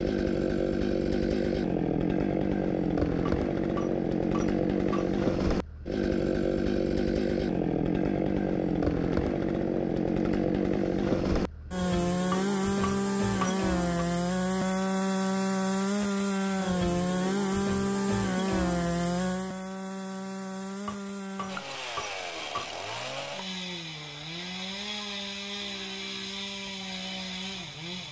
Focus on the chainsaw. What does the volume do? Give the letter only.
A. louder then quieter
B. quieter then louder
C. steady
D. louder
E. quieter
E.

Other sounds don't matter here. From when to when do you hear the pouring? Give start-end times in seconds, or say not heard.
not heard.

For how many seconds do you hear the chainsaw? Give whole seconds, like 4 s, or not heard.
28 s.